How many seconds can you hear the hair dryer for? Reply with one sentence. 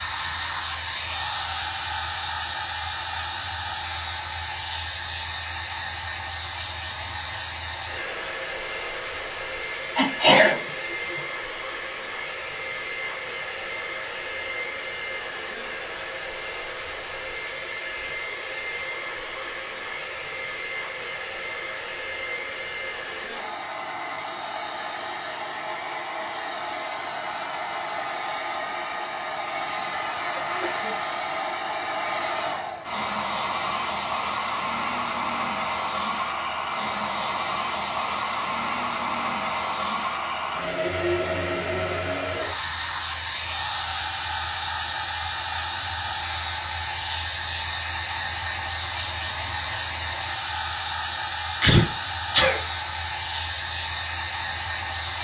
The hair dryer can be heard for 55 seconds in total.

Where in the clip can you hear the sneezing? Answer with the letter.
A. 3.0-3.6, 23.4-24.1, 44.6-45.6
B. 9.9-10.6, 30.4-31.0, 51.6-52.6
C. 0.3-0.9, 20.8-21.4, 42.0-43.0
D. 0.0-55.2
B.